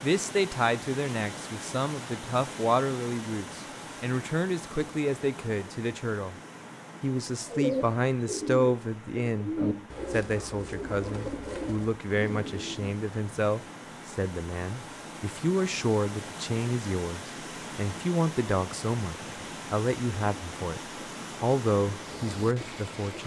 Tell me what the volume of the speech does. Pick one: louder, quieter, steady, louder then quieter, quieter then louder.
steady.